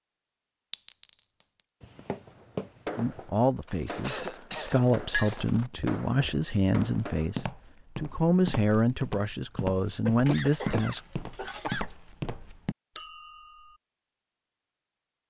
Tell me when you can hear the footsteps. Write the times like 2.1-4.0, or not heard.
1.8-12.8.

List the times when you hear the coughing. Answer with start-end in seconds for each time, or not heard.
3.6-4.8, 10.1-11.8.